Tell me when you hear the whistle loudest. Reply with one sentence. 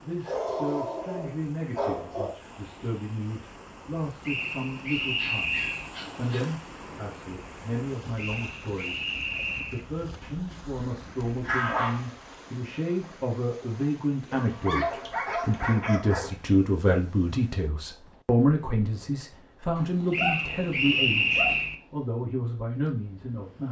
The loudest moment of the whistle is at 21 seconds.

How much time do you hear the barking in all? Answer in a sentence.
The barking can be heard for 9 seconds in total.